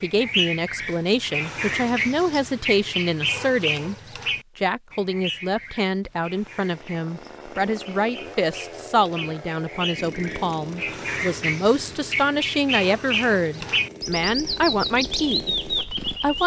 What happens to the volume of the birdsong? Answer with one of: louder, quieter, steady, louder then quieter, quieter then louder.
quieter then louder.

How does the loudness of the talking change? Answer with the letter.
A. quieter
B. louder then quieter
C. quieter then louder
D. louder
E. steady
E.